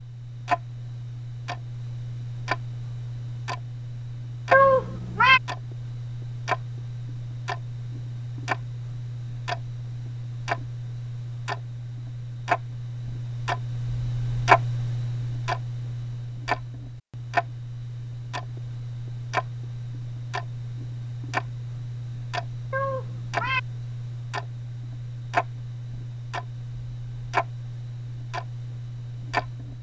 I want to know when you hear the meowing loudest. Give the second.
5 s.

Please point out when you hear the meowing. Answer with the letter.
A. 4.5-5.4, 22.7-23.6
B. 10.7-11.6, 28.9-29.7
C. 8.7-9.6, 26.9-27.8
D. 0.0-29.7
A.